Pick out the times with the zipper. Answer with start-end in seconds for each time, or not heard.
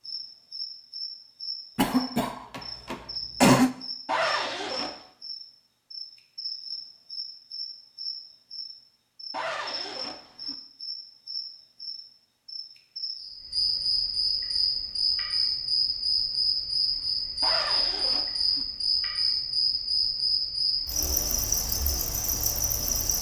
4.0-5.0, 9.3-10.6, 17.4-18.6.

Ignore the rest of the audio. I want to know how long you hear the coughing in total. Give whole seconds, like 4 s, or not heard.
2 s.